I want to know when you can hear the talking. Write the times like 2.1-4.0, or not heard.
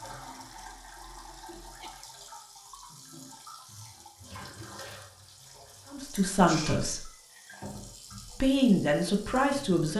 5.9-7.0, 8.3-9.9.